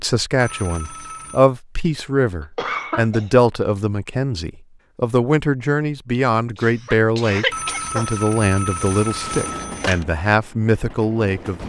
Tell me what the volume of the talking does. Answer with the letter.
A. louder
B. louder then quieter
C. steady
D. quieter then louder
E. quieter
C.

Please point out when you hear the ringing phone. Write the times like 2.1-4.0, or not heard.
0.3-1.4, 7.5-10.1.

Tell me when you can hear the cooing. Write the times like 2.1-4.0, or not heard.
not heard.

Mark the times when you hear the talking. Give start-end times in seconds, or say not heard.
0.0-11.6.